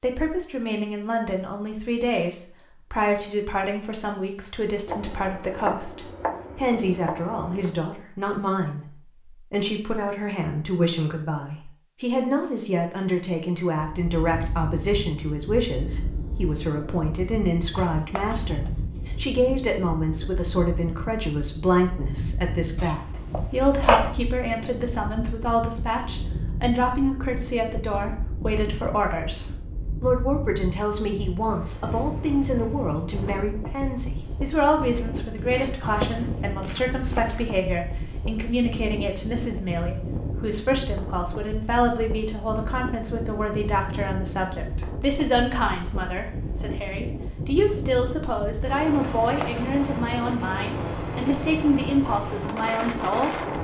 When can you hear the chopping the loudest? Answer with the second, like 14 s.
24 s.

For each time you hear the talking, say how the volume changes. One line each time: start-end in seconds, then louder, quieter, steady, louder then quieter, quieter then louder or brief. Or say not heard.
0.0-53.3 steady.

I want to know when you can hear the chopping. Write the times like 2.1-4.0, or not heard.
4.8-7.8, 17.7-18.7, 22.8-24.1, 34.8-37.5, 49.0-49.7.